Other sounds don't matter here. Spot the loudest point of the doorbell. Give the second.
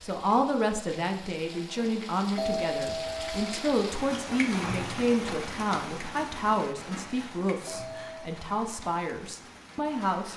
3 s.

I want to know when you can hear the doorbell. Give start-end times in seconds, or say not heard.
2.4-3.6, 7.7-8.2.